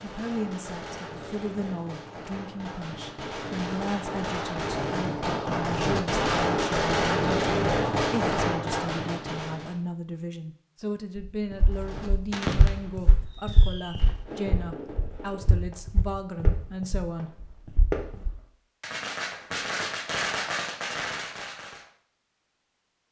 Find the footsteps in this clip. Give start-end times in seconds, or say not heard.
11.2-18.3.